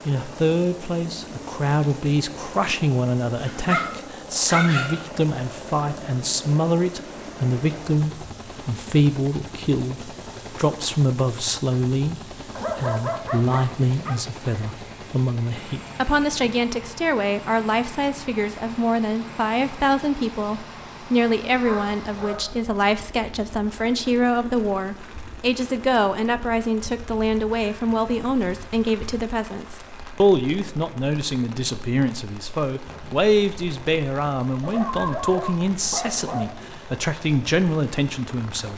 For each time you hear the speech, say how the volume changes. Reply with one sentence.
You can hear the speech from 0.1 to 38.7 s, at a steady volume.